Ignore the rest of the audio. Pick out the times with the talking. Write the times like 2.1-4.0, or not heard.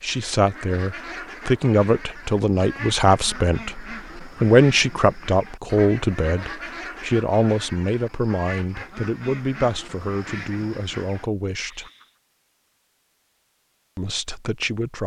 0.0-11.9, 13.9-15.0.